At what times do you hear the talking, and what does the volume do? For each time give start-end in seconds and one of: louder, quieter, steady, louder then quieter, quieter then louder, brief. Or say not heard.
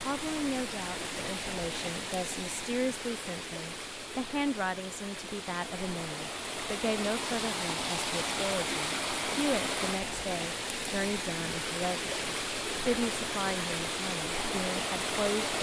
0.1-15.5 steady.